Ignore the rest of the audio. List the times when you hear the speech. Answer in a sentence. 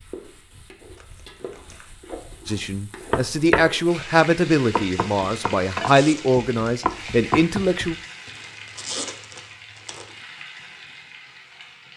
You can hear the speech from 2.5 to 8.0 s.